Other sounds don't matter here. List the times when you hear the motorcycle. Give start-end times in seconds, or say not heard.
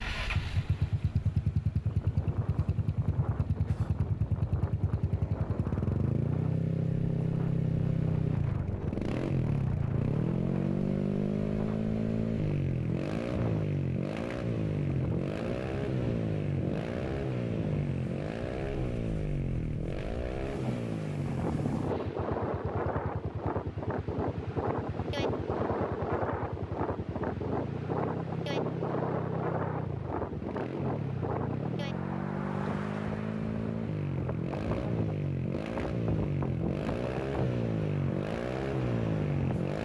0.0-39.7.